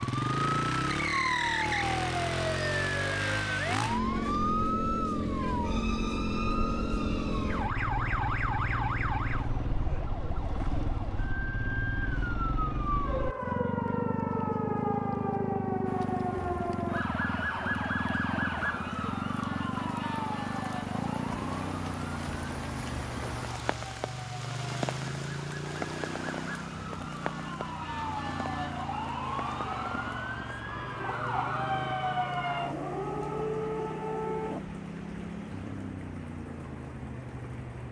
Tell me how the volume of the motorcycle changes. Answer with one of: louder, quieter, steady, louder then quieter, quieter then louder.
quieter.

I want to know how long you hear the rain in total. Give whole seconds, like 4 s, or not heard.
22 s.